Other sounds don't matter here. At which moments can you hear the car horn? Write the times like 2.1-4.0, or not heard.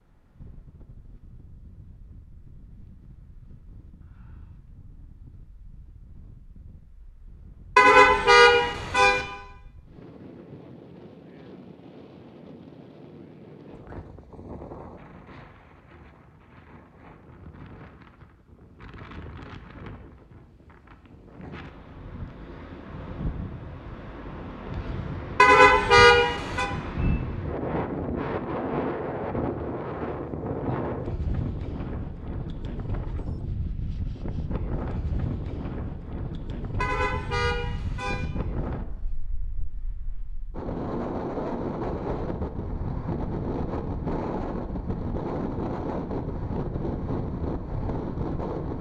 7.8-9.2, 25.4-26.7, 36.8-38.2.